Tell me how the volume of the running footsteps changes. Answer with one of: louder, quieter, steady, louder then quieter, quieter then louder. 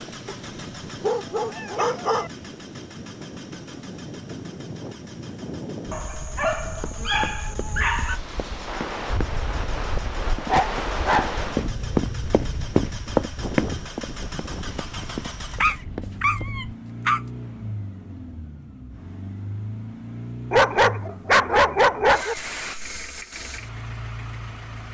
louder then quieter.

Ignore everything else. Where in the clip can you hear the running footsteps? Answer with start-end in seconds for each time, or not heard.
6.1-16.5.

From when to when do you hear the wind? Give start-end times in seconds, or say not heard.
0.0-16.5.